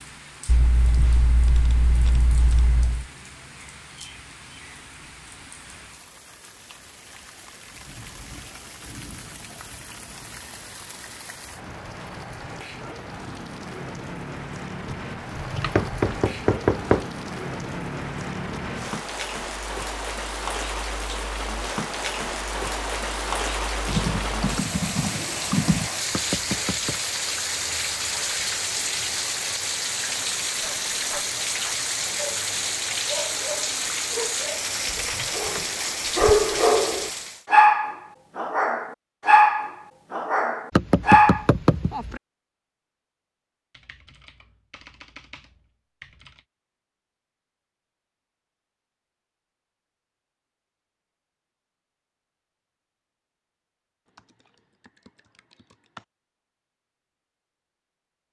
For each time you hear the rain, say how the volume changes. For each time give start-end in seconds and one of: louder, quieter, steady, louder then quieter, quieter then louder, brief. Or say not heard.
0.0-37.5 louder.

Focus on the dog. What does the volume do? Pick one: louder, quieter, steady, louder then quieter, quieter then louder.
louder.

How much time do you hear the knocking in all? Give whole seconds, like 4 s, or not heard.
4 s.